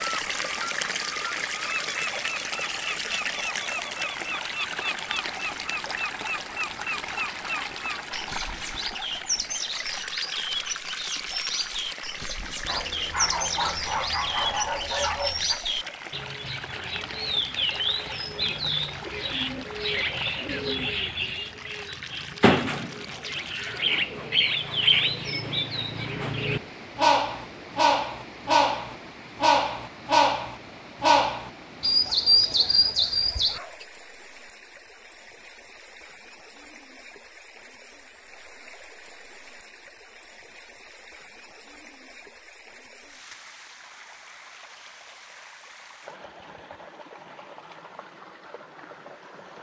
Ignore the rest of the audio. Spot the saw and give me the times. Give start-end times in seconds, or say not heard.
not heard.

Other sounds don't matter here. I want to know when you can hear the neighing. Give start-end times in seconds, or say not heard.
not heard.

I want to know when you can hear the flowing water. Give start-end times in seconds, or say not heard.
0.0-49.5.